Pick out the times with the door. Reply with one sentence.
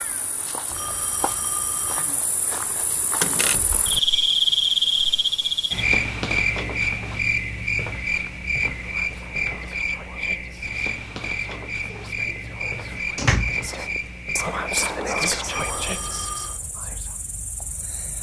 You can hear the door from 3.2 to 3.9 s and from 11.9 to 13.7 s.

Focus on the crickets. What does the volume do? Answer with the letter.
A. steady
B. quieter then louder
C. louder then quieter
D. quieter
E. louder
C.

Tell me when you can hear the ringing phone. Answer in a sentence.
The ringing phone can be heard from 0.7 to 2.1 s and from 15.4 to 16.6 s.